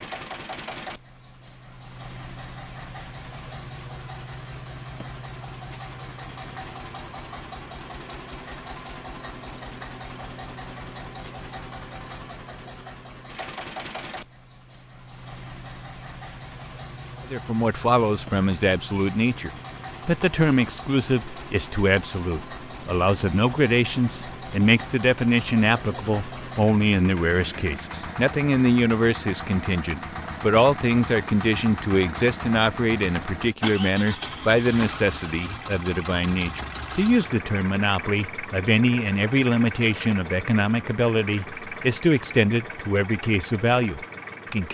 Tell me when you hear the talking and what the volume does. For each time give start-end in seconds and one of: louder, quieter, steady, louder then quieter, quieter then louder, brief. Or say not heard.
17.3-44.6 steady.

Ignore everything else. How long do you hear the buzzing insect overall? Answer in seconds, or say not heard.
not heard.